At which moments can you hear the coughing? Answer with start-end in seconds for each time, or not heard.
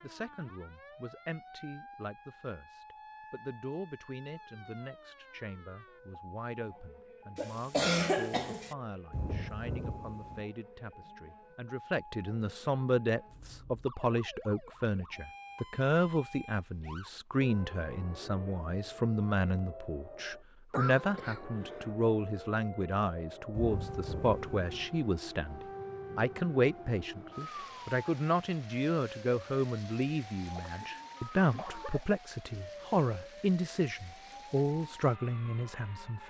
7.3-8.8, 20.7-21.9, 30.6-32.0.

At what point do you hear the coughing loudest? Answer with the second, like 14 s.
8 s.